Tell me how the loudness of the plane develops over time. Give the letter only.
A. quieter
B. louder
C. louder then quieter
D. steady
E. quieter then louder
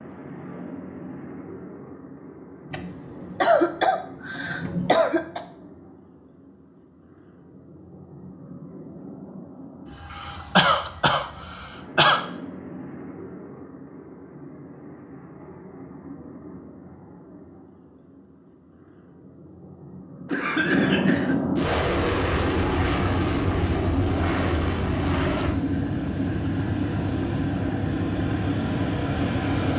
B.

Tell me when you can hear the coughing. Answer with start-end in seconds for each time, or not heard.
2.7-5.4, 10.1-12.2, 20.2-21.4.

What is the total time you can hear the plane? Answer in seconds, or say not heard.
30 s.